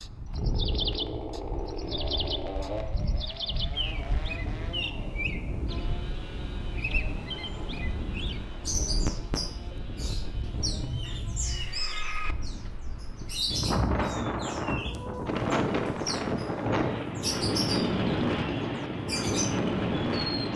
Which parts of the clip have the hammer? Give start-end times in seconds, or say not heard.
not heard.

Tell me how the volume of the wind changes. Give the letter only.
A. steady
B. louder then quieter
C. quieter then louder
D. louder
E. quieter
D.